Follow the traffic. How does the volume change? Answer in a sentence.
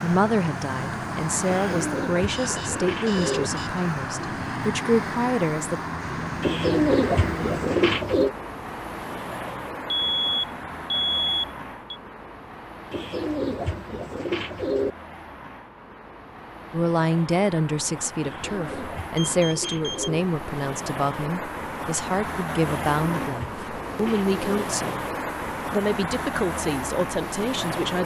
The volume of the traffic goes down, then up.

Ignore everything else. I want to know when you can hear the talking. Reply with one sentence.
The talking can be heard from 0.0 to 5.8 s, from 16.7 to 25.0 s and from 25.7 to 28.0 s.